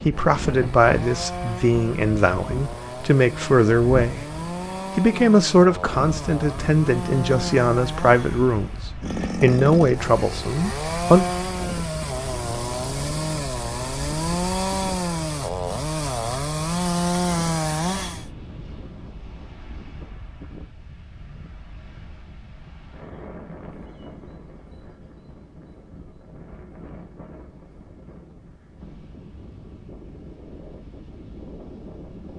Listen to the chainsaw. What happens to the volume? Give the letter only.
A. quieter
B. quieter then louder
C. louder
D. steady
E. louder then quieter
C.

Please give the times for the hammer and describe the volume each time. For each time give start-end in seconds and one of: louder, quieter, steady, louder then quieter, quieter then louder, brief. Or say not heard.
not heard.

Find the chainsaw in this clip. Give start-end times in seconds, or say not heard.
0.0-18.2.